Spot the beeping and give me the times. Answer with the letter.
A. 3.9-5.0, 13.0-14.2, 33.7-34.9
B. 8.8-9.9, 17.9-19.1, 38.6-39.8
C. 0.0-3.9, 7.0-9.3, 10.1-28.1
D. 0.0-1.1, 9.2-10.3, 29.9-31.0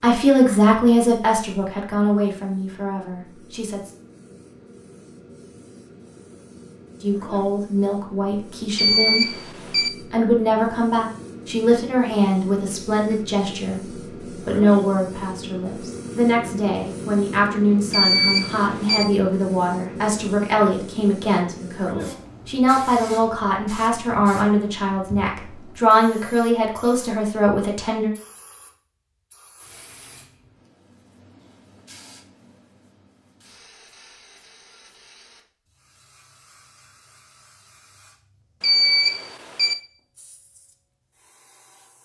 B.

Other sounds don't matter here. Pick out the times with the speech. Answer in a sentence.
The speech can be heard from 0.0 to 3.9 s, from 7.0 to 9.3 s and from 10.1 to 28.1 s.